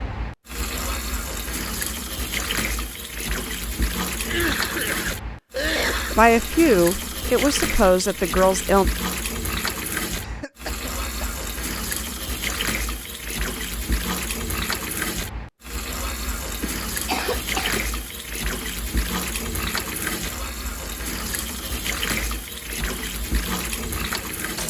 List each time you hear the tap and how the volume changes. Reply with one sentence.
The tap can be heard from 0.0 to 24.6 s, at a steady volume.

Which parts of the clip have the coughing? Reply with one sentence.
The coughing can be heard from 4.2 to 6.2 s, from 10.2 to 11.2 s and from 16.6 to 17.8 s.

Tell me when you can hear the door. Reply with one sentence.
You can't hear the door here.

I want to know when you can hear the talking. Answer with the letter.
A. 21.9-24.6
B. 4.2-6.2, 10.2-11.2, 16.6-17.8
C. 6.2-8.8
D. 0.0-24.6
C.